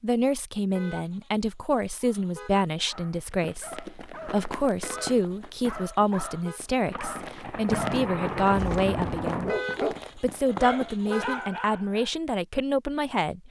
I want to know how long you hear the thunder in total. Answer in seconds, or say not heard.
3 s.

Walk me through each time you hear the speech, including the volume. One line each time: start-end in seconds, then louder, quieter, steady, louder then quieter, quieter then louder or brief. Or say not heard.
0.0-13.4 steady.